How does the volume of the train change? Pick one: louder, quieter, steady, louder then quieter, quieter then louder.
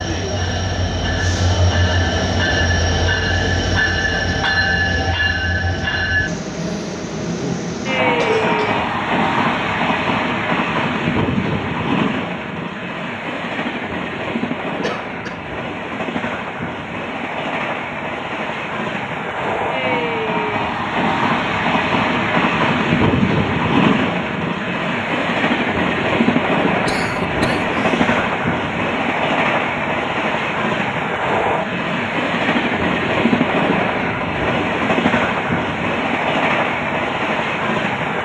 steady.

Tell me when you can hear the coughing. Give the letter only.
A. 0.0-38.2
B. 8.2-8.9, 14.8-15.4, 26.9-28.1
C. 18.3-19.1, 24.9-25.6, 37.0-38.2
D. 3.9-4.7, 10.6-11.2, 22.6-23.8
B.